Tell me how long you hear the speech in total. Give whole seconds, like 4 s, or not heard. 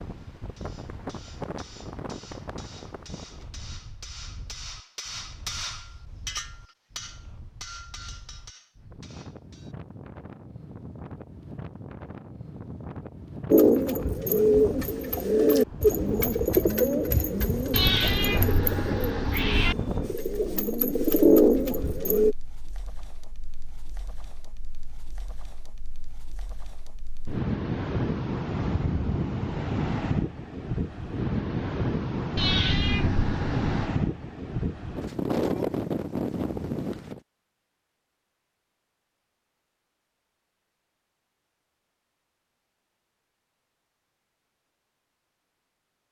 not heard.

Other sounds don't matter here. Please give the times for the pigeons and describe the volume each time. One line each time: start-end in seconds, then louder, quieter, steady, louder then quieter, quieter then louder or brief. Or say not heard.
13.5-22.4 quieter then louder.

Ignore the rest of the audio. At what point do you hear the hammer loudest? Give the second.
6 s.